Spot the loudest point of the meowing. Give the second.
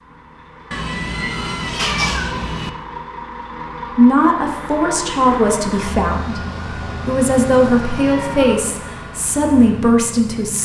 2 s.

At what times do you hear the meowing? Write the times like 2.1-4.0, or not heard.
0.7-2.7, 8.0-8.6.